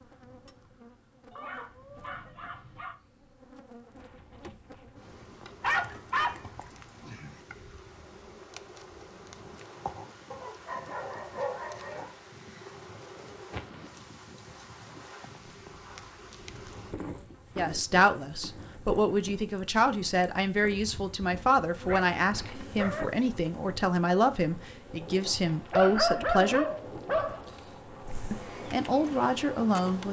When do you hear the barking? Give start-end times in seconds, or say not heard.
1.3-3.0, 5.6-7.4, 10.3-12.1, 15.7-17.8, 21.9-23.1, 25.7-27.4.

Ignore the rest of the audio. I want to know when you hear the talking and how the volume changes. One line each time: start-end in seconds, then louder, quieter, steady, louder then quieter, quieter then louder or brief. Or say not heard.
17.6-26.6 steady
28.3-30.0 brief.